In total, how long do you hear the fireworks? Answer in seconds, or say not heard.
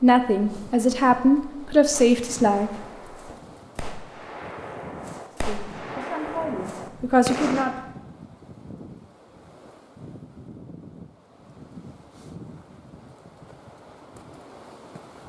6 s.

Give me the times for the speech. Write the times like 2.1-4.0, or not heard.
0.0-2.8, 5.3-7.9.